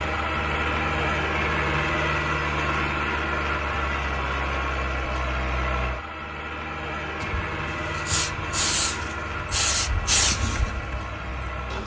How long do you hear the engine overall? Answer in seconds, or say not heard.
12 s.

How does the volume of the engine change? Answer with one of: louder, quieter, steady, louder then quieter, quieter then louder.
quieter.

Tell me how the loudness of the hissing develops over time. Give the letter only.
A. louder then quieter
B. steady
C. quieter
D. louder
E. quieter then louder
A.